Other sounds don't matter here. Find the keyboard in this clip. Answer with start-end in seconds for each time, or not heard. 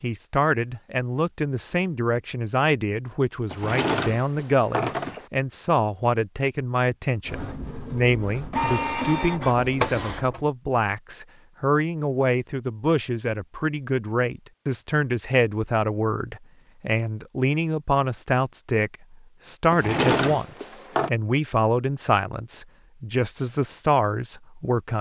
not heard.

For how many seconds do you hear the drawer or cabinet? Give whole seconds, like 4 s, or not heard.
3 s.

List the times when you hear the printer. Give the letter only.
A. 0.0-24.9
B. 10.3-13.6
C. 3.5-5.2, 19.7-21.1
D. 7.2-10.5
D.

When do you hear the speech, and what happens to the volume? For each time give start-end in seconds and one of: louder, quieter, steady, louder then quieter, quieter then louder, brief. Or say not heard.
0.0-24.9 steady.